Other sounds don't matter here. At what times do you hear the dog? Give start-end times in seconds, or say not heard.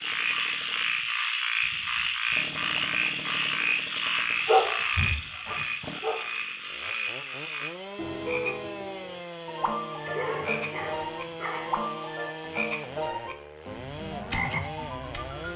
4.5-6.2, 10.1-11.8.